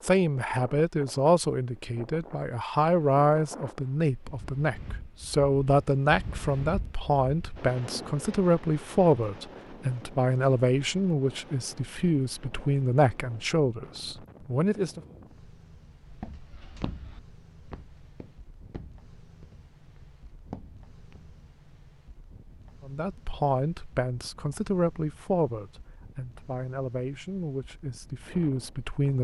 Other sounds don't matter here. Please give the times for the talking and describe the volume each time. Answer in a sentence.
You can hear the talking from 0.0 to 15.0 s, at a steady volume; and from 22.9 to 29.1 s, getting quieter then louder.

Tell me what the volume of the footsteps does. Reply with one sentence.
The loudness of the footsteps goes down, then up.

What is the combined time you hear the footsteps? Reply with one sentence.
You can hear the footsteps for 5 seconds altogether.